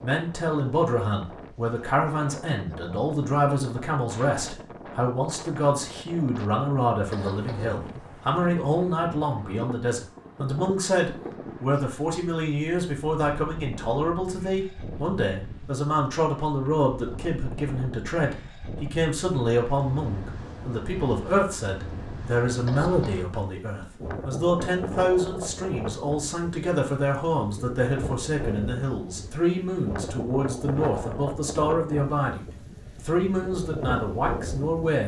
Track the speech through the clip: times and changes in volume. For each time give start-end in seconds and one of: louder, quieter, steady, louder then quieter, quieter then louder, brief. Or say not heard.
0.0-35.0 steady.